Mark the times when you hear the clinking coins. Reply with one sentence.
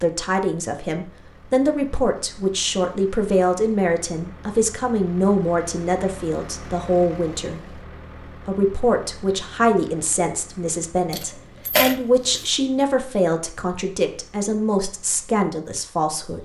The clinking coins can be heard from 11.1 to 12.4 s.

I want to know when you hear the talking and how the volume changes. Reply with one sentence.
The talking can be heard from 0.0 to 16.4 s, at a steady volume.